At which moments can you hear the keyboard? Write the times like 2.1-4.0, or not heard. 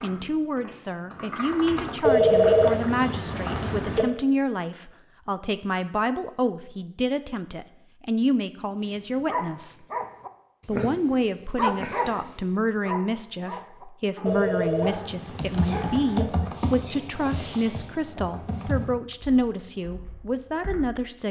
0.0-3.7, 15.3-20.9.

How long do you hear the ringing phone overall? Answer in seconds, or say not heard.
4 s.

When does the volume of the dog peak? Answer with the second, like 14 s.
12 s.